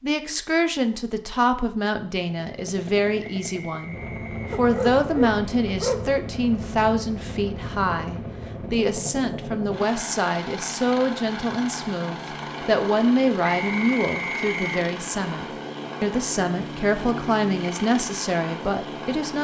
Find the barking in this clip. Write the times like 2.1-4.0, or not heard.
4.5-6.2.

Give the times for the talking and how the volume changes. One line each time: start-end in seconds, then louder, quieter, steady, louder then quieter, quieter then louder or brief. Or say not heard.
0.0-19.3 steady.